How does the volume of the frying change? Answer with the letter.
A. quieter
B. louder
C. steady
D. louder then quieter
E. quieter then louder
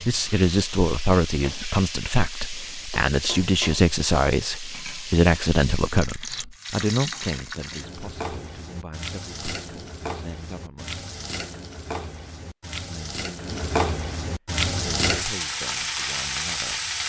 B.